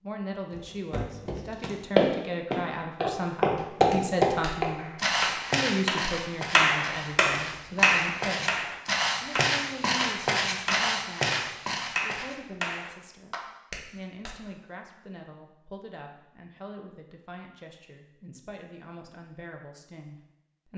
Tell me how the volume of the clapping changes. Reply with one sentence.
The loudness of the clapping goes up, then down.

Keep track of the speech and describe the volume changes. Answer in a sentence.
The volume of the speech goes down.